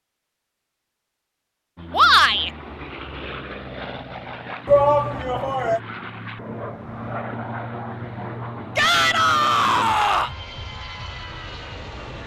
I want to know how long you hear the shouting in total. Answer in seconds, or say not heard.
3 s.